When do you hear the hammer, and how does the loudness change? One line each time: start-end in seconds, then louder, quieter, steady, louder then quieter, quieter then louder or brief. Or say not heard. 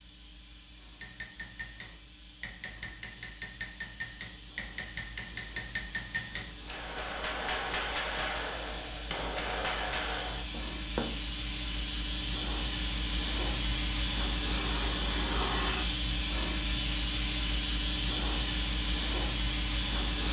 1.0-11.2 louder.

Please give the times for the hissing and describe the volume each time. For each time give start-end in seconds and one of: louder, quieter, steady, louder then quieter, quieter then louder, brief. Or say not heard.
0.0-20.2 louder.